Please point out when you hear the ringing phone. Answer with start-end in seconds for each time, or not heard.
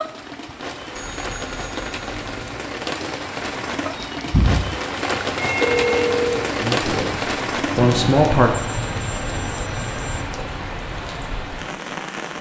0.9-2.5, 5.3-6.5, 8.8-10.2.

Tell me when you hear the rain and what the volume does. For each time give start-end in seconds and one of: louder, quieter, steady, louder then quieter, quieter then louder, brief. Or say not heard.
0.0-12.3 louder then quieter.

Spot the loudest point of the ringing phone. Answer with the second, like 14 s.
6 s.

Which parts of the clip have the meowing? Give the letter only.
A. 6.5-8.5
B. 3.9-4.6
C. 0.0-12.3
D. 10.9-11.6
B.